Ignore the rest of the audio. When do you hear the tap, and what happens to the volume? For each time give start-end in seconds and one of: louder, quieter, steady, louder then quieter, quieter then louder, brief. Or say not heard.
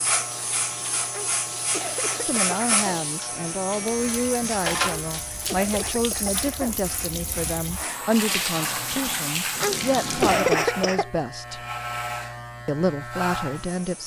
0.0-10.6 louder.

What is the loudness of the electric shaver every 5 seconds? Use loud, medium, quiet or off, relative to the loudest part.
loud, medium, loud.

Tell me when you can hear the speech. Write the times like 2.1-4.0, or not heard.
2.2-11.6, 12.7-14.0.